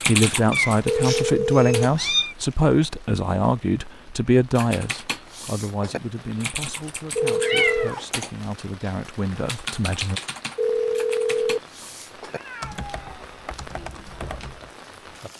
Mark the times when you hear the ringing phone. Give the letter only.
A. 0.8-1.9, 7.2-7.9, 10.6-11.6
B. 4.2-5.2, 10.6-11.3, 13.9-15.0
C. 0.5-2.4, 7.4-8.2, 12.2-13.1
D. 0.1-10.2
A.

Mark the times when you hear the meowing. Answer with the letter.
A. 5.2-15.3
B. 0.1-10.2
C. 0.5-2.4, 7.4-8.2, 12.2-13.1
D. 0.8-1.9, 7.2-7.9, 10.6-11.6
C.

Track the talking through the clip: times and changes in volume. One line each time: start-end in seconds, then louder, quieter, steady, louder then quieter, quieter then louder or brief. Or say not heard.
0.1-10.2 quieter.